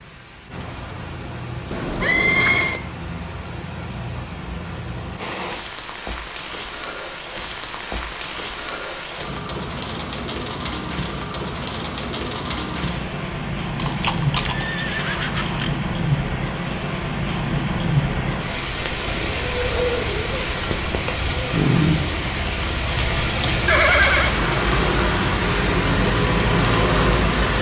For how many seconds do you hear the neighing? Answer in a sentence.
The neighing can be heard for 4 seconds in total.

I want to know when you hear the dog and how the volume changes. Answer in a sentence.
You can't hear the dog here.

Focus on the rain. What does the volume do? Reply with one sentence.
The volume of the rain goes up.